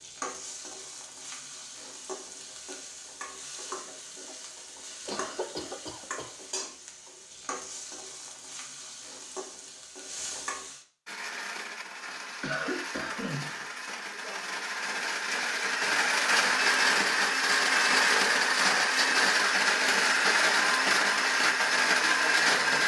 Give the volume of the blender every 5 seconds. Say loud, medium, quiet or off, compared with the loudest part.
off, off, quiet, loud, loud.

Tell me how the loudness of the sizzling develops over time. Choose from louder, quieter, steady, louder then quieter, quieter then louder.
steady.